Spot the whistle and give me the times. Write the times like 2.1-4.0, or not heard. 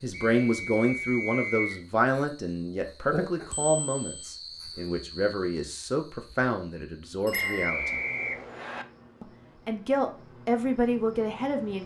0.1-1.8, 7.3-8.8.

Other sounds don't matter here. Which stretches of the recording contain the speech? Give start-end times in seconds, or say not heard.
0.0-8.0, 9.2-11.8.